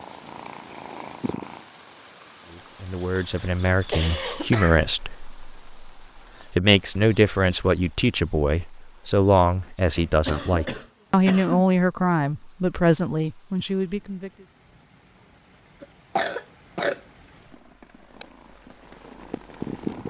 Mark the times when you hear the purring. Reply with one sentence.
The purring can be heard from 0.0 to 1.6 s and from 18.1 to 20.0 s.